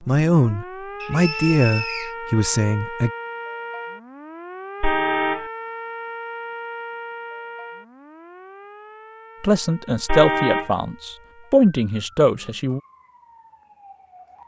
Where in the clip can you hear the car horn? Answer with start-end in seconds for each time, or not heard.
4.8-5.5, 10.1-10.8.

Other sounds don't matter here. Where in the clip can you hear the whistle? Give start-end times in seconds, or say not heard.
1.0-2.1.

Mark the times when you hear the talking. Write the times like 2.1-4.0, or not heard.
0.1-3.1, 9.4-12.8.